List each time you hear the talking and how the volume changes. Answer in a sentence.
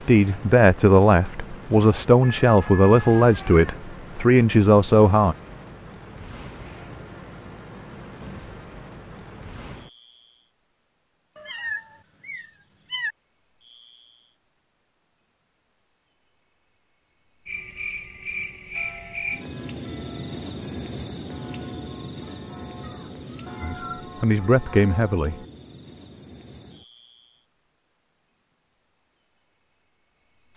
The talking can be heard from 0.1 to 5.3 s, at a steady volume; and briefly from 23.6 to 25.4 s.